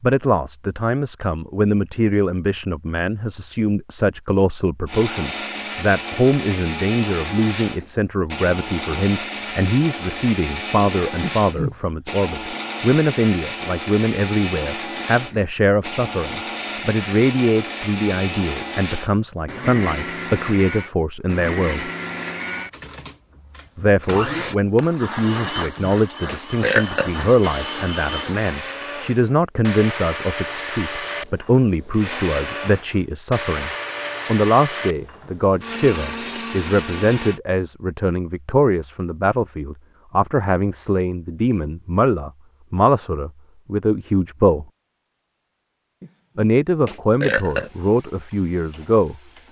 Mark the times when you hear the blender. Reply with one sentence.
The blender can be heard from 4.8 to 37.4 s.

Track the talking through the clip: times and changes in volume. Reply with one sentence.
The talking can be heard from 0.0 to 21.9 s, at a steady volume; from 23.8 to 44.6 s, at a steady volume; and briefly from 46.4 to 49.1 s.